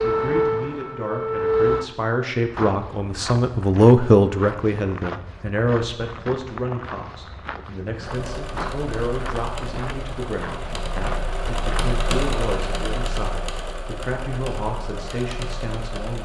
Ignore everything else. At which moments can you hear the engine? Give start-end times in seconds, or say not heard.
8.0-16.2.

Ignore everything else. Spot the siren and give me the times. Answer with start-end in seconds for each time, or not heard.
0.0-1.9.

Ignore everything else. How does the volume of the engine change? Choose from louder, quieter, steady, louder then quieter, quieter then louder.
louder then quieter.